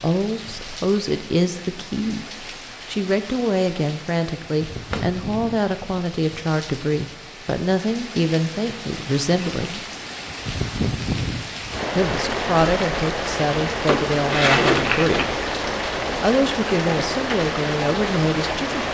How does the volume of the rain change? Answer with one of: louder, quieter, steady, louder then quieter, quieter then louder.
louder.